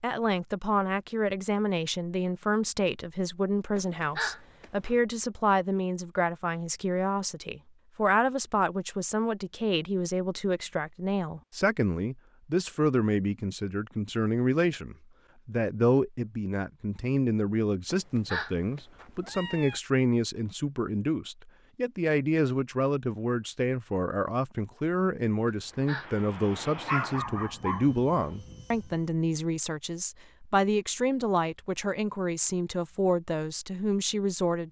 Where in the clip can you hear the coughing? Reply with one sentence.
The coughing can't be heard in this clip.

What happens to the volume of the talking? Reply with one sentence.
The volume of the talking stays about the same.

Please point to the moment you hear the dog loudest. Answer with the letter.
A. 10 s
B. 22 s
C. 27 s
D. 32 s
C.